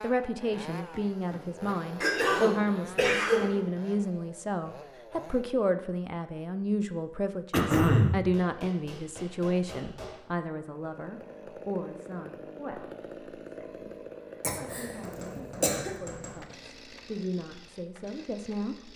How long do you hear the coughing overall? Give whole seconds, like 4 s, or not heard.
4 s.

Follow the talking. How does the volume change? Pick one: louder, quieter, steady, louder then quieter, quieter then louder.
quieter.